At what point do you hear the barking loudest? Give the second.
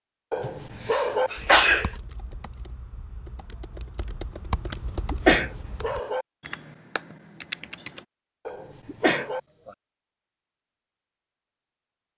1 s.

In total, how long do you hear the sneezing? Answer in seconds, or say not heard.
3 s.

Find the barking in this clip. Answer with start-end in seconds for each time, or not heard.
0.3-1.3, 5.2-6.2, 8.4-9.4.